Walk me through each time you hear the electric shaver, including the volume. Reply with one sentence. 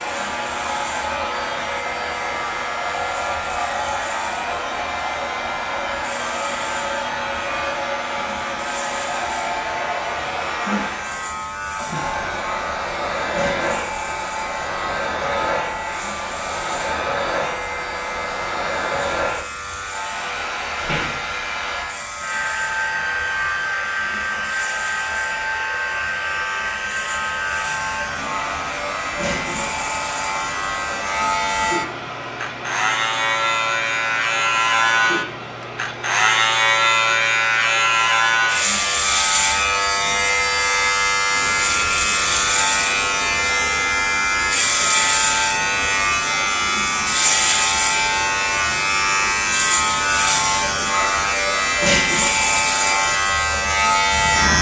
You can hear the electric shaver from 0.0 to 54.5 s, getting louder.